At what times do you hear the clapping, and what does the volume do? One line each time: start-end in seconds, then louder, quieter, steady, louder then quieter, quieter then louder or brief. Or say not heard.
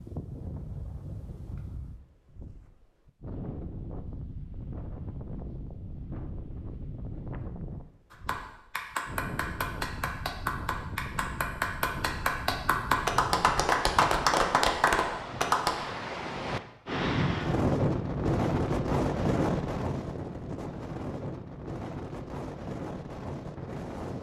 8.1-15.8 louder.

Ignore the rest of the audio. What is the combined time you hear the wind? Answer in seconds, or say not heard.
24 s.